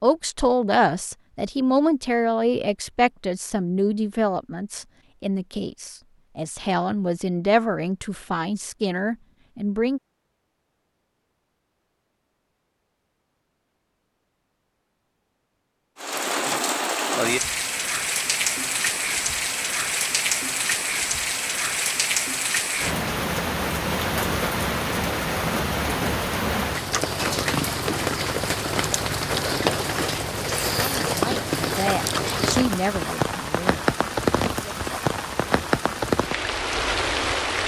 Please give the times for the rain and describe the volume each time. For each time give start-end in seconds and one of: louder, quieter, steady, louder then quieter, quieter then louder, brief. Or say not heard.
15.9-37.6 steady.